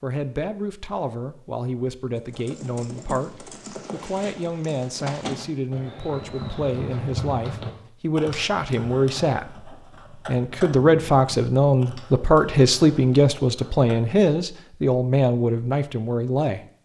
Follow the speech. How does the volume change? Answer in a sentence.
The loudness of the speech goes up.